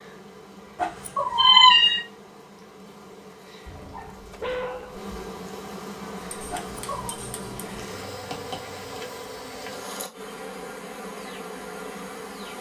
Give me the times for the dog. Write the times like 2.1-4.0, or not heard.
3.6-5.1.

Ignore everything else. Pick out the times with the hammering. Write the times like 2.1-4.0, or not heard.
6.2-8.8.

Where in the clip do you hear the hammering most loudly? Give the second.
8 s.